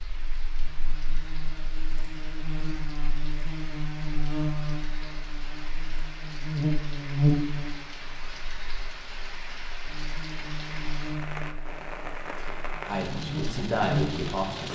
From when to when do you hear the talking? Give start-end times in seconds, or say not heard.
12.8-14.7.